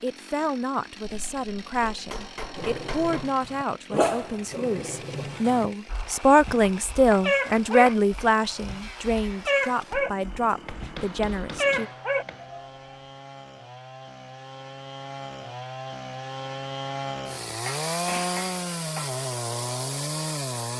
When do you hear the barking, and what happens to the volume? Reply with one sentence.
You can hear the barking from 2.5 to 12.7 s, getting quieter then louder.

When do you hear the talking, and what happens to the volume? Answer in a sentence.
You can hear the talking from 0.0 to 11.9 s, getting louder then quieter.